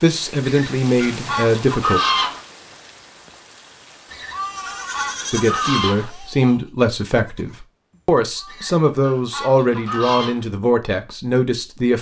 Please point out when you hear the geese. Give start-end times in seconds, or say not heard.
0.4-2.4, 4.0-6.1, 8.4-10.4.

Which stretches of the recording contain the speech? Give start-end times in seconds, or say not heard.
0.0-2.0, 5.3-11.9.